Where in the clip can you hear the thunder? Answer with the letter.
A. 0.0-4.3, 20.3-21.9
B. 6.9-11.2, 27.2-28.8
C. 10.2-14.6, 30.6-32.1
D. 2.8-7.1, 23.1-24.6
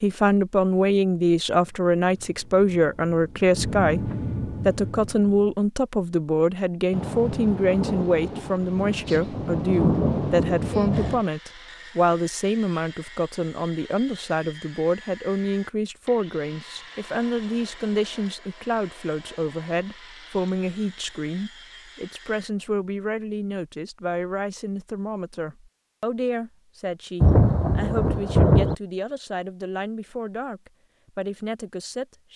B.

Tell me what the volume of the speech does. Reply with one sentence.
The volume of the speech goes down.